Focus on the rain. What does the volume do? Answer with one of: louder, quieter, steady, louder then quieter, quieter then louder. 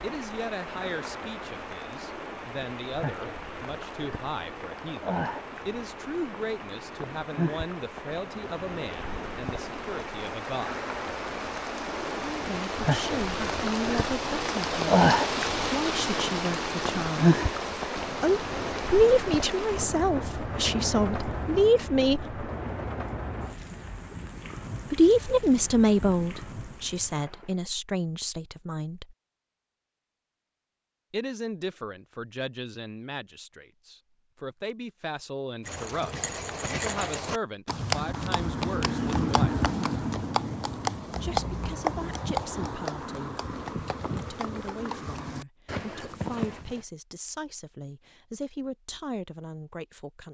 louder then quieter.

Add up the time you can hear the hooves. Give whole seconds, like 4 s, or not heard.
11 s.